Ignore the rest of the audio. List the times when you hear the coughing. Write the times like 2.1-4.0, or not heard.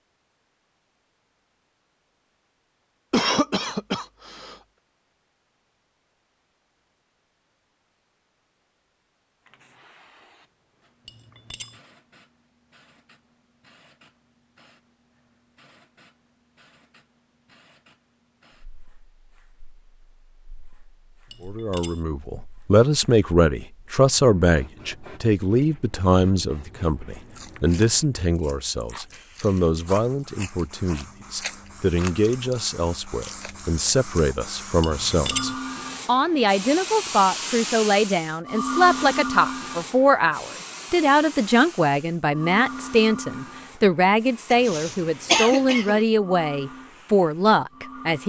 3.1-4.5, 44.5-46.0.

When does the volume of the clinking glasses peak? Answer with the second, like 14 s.
35 s.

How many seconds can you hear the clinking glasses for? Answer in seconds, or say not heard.
2 s.